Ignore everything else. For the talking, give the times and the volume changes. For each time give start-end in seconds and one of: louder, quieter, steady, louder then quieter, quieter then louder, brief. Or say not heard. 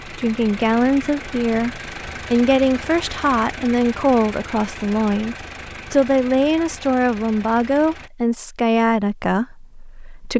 0.0-10.3 steady.